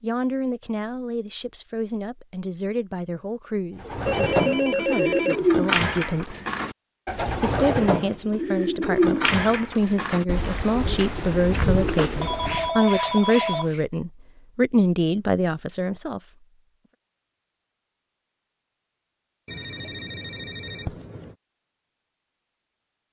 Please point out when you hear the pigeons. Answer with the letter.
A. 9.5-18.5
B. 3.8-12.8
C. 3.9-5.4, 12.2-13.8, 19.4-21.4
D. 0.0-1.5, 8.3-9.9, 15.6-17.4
B.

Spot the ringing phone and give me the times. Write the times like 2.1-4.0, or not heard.
3.9-5.4, 12.2-13.8, 19.4-21.4.